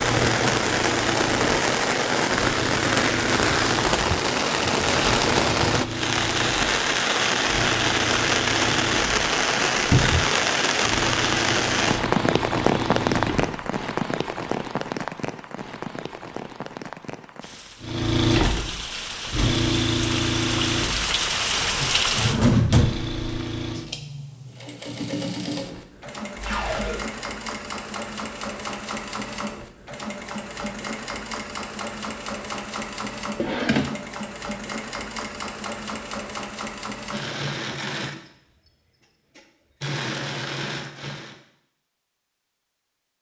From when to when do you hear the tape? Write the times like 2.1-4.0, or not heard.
26.4-27.0.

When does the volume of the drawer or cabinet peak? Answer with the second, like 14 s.
23 s.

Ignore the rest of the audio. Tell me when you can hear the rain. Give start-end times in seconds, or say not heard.
0.0-22.4.